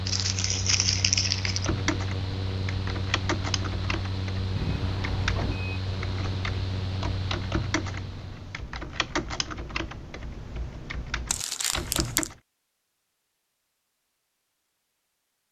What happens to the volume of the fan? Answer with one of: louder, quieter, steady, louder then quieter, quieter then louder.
steady.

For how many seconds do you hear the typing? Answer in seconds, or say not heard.
11 s.